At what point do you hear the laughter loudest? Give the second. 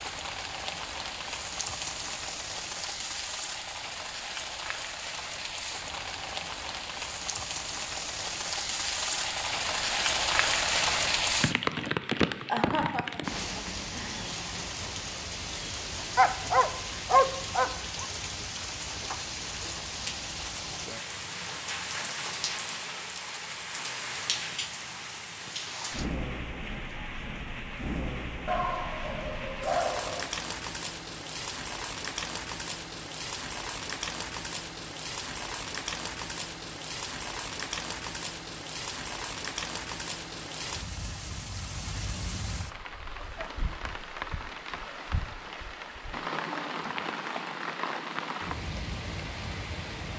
13 s.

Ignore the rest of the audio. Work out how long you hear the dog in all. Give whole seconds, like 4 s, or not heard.
4 s.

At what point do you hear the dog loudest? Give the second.
17 s.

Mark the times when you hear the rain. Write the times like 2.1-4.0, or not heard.
0.0-50.1.